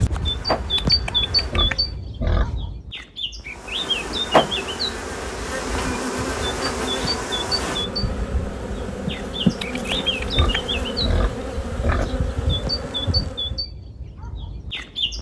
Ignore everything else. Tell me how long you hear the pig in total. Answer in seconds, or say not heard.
4 s.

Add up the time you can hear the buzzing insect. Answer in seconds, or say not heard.
12 s.